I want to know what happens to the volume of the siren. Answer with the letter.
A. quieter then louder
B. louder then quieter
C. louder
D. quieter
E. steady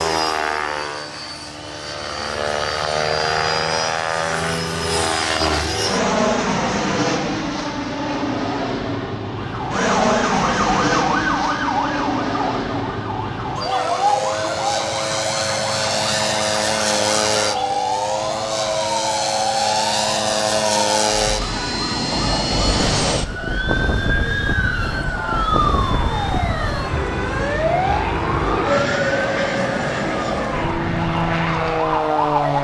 E.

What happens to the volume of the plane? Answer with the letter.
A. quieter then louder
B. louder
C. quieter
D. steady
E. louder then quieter
D.